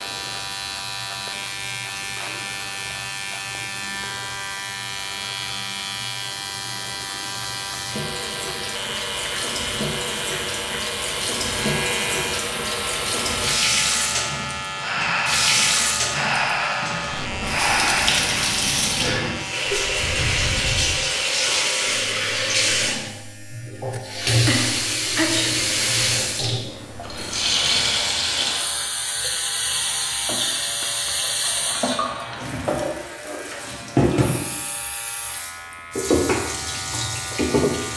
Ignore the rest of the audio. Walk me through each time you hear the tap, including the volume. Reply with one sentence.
The tap can be heard from 0.0 to 37.9 s, getting louder.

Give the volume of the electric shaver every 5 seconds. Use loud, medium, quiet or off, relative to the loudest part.
loud, loud, loud, loud, medium, medium, medium, medium.